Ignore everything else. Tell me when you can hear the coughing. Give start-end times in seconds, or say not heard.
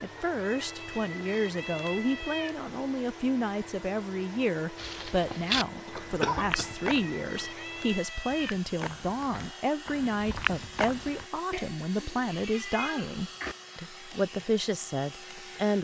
5.8-6.7.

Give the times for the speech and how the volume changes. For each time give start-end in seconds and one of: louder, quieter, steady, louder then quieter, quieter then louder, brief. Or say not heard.
0.0-15.7 steady.